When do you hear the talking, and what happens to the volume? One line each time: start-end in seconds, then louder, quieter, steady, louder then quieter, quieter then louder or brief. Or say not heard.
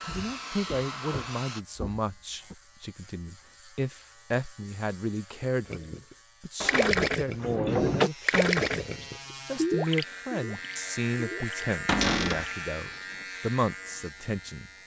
0.0-14.7 steady.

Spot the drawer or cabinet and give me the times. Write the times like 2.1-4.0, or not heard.
0.1-2.5, 6.6-8.1, 11.8-12.4.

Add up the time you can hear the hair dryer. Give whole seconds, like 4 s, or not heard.
2 s.